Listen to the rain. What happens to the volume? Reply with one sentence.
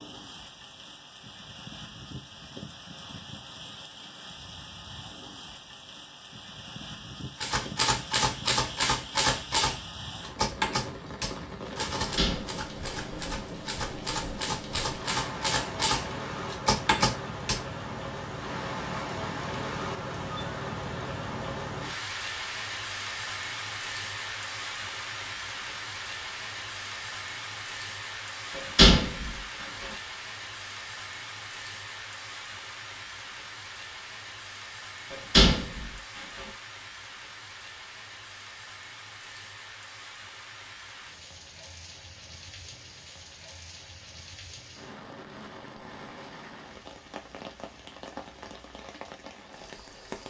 The loudness of the rain goes up, then down.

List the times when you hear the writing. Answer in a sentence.
You can't hear the writing here.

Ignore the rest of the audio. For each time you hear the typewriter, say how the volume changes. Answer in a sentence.
The typewriter can be heard from 7.4 to 17.6 s, getting quieter then louder.